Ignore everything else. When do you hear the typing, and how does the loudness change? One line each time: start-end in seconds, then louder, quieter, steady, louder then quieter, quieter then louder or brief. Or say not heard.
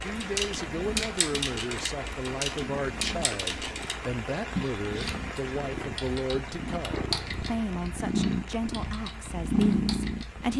0.0-10.5 quieter.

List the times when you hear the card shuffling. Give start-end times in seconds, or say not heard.
not heard.